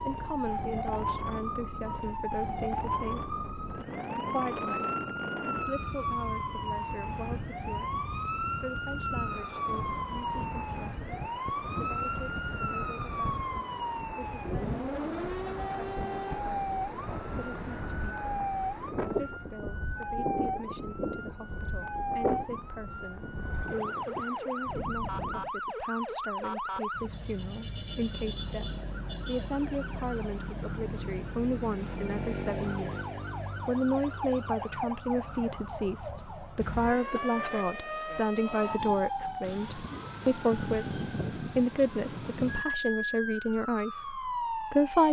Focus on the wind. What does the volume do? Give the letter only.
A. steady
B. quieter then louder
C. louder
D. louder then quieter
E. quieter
A.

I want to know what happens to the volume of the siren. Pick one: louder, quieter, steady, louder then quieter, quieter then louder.
steady.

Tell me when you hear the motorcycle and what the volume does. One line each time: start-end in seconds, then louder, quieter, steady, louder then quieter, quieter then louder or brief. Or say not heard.
not heard.